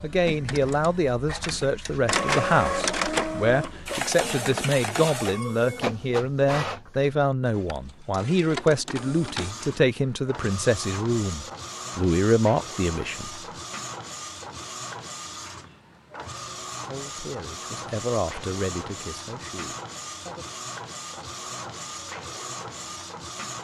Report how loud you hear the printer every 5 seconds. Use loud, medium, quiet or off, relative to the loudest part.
loud, medium, medium, medium, medium.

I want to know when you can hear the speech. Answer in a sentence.
The speech can be heard from 0.0 to 13.4 s and from 16.8 to 20.6 s.